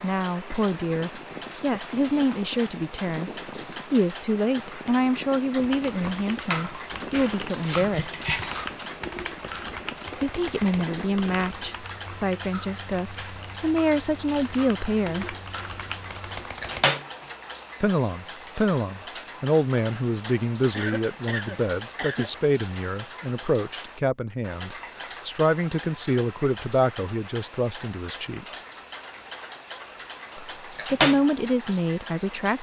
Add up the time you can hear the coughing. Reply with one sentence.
You can hear the coughing for 2 seconds altogether.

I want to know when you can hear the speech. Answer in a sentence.
The speech can be heard from 0.0 to 8.2 s, from 10.2 to 15.3 s, from 17.8 to 28.4 s and from 30.4 to 32.5 s.